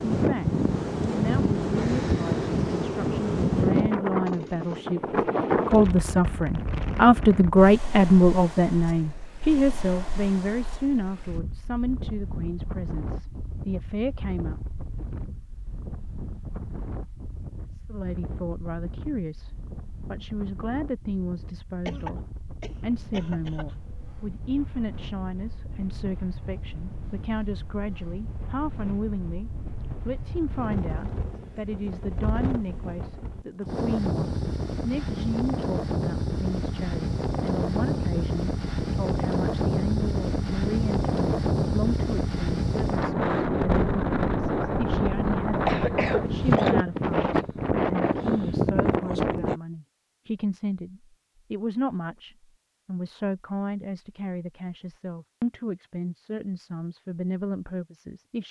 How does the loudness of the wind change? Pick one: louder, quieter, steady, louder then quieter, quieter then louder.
quieter then louder.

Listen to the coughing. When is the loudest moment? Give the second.
46 s.